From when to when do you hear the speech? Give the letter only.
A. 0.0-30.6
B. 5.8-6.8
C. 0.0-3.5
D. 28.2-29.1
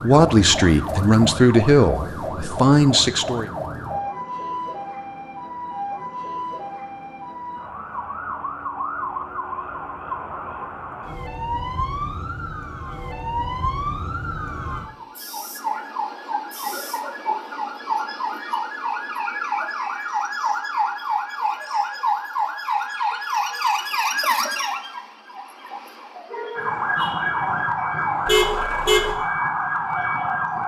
C.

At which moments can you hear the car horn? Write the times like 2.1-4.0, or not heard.
28.2-29.1.